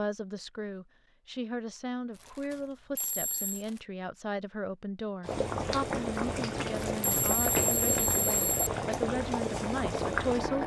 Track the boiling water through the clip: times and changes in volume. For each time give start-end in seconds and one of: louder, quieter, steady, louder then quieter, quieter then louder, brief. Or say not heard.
5.2-10.6 steady.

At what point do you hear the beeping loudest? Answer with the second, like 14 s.
8 s.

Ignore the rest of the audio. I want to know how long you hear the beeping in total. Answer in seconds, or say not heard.
2 s.